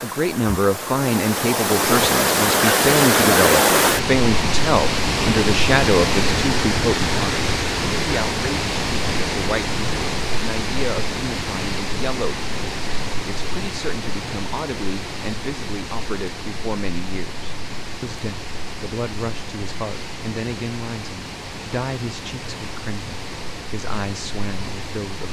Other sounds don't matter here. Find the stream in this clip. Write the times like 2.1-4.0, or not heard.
0.0-25.2.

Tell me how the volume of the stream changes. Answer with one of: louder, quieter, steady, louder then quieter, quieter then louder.
quieter.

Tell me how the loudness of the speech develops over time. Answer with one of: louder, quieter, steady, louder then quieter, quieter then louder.
quieter.